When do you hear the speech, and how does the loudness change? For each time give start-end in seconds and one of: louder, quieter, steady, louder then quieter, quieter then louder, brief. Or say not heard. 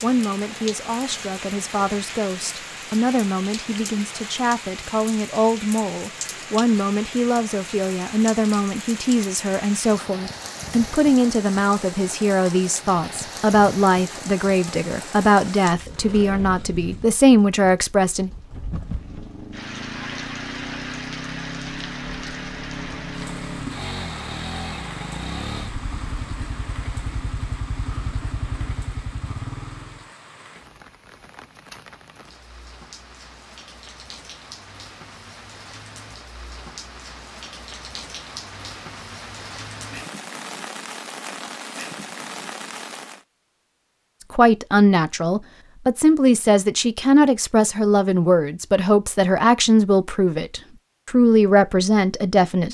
0.0-18.3 louder
44.3-52.6 steady.